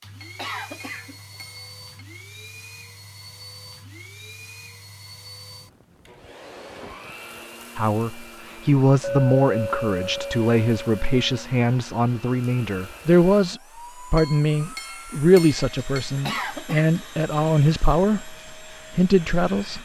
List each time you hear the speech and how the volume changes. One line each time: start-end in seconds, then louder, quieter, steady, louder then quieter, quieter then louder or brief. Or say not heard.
7.8-19.8 steady.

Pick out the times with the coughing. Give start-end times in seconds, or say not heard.
0.3-1.2, 16.2-17.0.